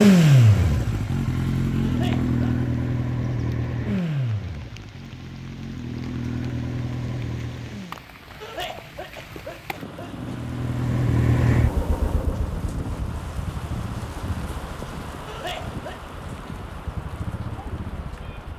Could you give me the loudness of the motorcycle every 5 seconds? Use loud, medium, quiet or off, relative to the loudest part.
loud, medium, medium, quiet.